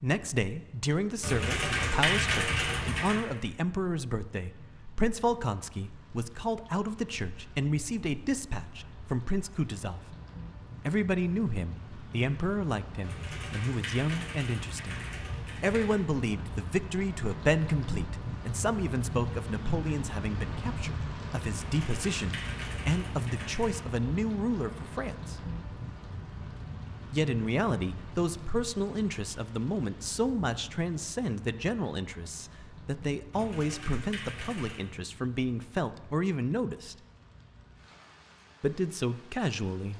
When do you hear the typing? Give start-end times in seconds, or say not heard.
1.2-3.2, 13.0-16.0, 21.5-23.9, 33.3-34.9.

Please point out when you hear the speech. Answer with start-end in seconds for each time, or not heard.
0.0-10.2, 10.8-25.4, 27.1-37.0, 38.6-39.9.